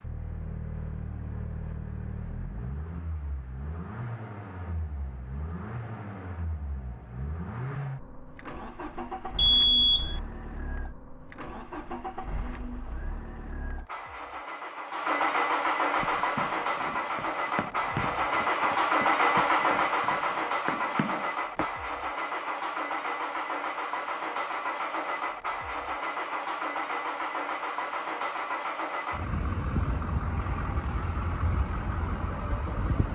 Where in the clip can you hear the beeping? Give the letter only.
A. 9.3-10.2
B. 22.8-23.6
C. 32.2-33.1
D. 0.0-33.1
A.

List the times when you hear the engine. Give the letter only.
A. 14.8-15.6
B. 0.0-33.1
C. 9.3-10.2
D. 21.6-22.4
B.